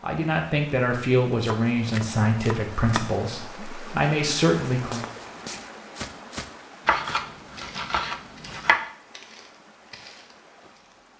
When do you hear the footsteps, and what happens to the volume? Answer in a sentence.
The footsteps can be heard from 4.7 to 11.0 s, getting quieter.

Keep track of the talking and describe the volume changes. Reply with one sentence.
The loudness of the talking goes down, then up.